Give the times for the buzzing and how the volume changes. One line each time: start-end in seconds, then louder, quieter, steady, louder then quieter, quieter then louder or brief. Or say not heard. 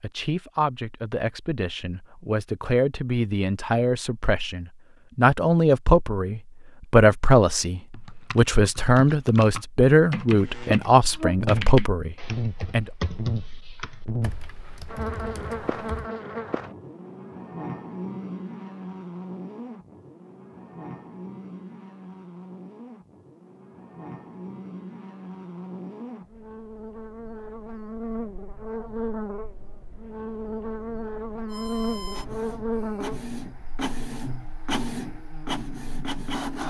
10.3-36.6 quieter then louder.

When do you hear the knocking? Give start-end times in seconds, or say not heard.
not heard.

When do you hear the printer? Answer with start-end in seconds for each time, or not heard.
31.4-36.6.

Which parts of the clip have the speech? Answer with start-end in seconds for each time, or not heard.
0.0-12.9.